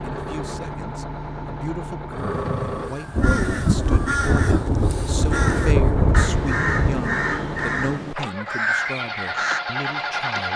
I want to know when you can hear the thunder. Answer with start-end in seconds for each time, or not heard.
3.1-7.0.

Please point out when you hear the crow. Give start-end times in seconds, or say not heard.
2.1-9.6.